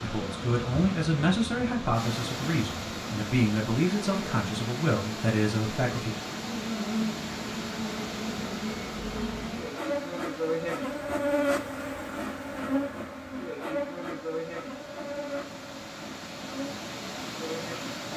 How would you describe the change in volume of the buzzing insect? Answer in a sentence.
The loudness of the buzzing insect goes up, then down.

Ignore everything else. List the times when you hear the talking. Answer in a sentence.
You can hear the talking from 0.0 to 6.2 s.